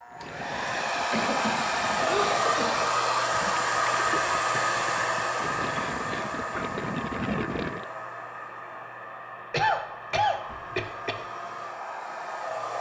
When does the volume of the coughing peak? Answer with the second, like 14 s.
10 s.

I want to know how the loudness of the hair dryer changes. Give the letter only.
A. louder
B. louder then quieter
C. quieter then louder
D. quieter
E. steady
D.